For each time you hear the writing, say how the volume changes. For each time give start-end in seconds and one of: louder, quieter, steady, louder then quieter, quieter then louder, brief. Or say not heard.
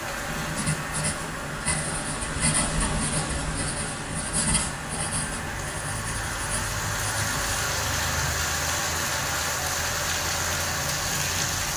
0.1-7.5 quieter.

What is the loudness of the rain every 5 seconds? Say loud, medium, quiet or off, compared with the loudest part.
medium, loud, loud.